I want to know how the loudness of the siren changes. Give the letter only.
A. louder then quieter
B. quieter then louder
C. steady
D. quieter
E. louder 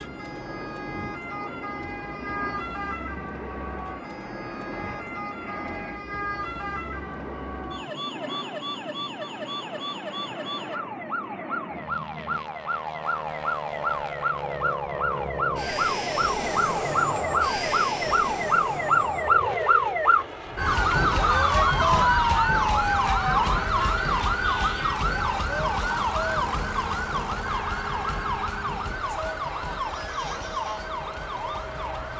A.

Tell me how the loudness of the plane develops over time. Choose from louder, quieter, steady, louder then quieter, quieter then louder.
louder then quieter.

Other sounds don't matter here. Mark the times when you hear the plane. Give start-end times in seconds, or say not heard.
0.0-32.1.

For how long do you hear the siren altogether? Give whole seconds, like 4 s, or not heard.
32 s.